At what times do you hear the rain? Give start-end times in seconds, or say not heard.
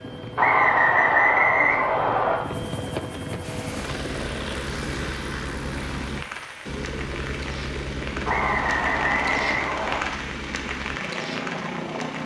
3.4-12.2.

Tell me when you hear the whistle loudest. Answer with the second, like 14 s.
1 s.